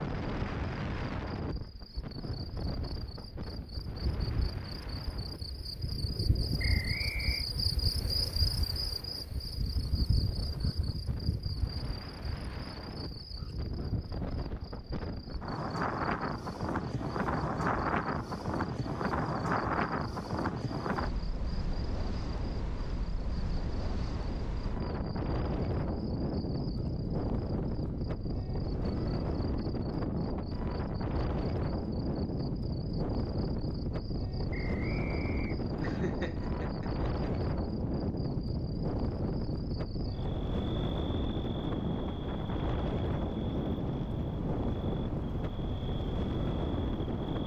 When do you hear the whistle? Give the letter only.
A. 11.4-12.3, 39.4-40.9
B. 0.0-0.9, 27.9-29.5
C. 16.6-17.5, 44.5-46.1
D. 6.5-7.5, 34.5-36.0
D.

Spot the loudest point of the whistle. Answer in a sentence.
The loudest moment of the whistle is at 7 seconds.